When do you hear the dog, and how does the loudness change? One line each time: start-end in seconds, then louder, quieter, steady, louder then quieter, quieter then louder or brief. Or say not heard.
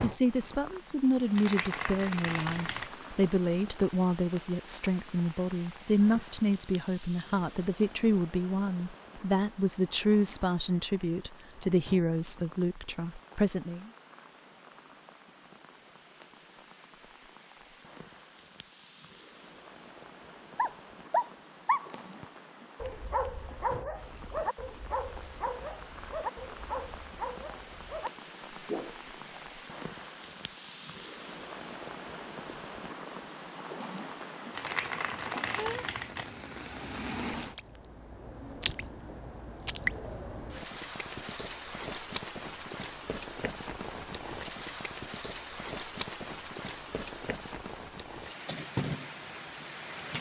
20.6-29.5 quieter.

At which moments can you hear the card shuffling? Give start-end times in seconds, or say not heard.
1.4-2.9, 34.5-36.3.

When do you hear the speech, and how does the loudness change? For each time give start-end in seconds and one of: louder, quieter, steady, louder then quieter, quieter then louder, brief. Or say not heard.
0.0-13.9 steady.